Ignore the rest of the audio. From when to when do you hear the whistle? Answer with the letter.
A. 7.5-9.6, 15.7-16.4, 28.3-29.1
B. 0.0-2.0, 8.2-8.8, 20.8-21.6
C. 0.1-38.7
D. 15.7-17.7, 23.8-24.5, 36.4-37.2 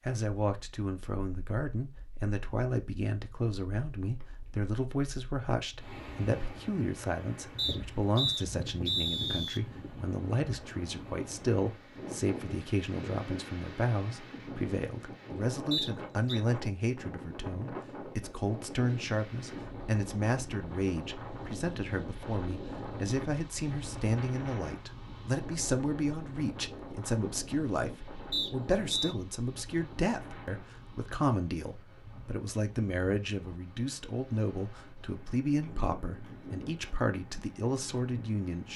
A.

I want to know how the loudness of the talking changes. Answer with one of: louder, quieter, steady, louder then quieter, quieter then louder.
steady.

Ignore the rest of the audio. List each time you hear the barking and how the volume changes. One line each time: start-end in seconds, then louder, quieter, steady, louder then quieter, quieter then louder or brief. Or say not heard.
not heard.